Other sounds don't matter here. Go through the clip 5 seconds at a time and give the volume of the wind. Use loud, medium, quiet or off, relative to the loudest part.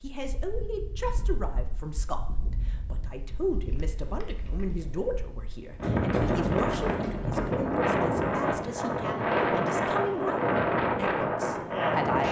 quiet, loud, loud.